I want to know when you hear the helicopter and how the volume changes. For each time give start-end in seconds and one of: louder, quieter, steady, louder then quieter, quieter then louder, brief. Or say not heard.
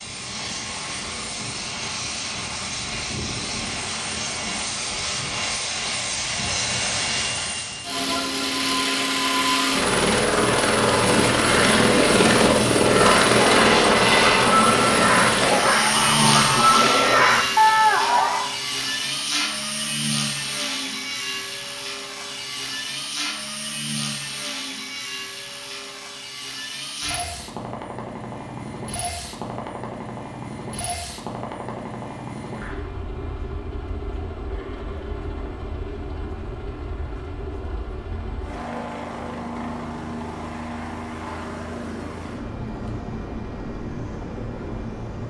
0.0-45.2 louder then quieter.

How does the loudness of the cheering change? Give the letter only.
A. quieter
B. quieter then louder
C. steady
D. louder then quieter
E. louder
E.